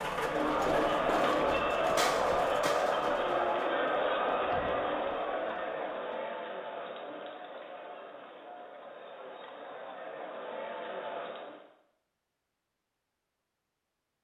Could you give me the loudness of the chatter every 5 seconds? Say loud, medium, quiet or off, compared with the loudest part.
loud, medium, medium.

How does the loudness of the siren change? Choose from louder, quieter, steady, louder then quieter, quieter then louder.
quieter.